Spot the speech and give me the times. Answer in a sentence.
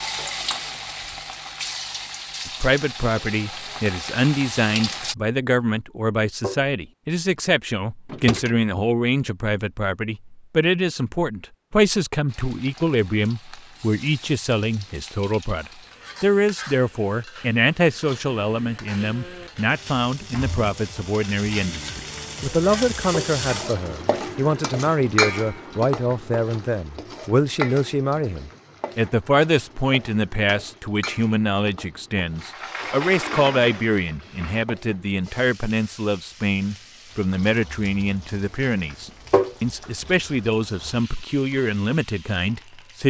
The speech can be heard from 2.5 to 43.0 s.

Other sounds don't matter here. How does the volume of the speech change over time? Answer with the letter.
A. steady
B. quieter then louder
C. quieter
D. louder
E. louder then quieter
A.